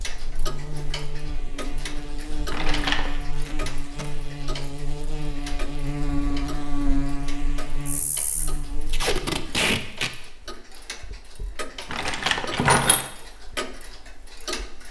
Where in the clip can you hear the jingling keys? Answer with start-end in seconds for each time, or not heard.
2.5-3.2, 11.9-13.1.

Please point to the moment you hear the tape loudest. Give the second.
10 s.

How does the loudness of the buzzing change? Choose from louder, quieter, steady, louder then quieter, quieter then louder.
louder then quieter.